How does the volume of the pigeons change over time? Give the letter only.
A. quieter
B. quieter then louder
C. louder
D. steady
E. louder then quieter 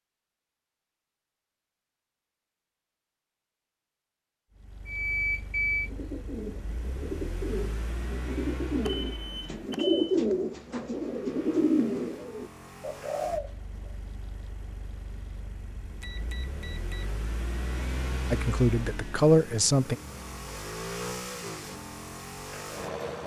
E.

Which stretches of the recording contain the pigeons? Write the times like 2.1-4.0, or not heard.
5.7-13.9.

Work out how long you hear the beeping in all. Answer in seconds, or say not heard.
3 s.